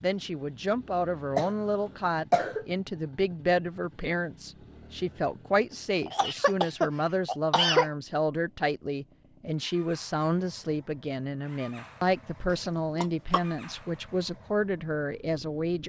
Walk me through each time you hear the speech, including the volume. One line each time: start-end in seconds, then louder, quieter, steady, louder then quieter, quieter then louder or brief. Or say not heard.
0.0-15.8 steady.